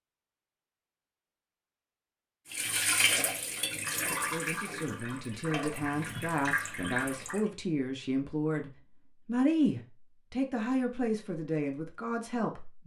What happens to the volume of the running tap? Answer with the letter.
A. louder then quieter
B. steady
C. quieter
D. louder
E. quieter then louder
E.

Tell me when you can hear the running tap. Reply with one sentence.
The running tap can be heard from 2.5 to 7.4 s.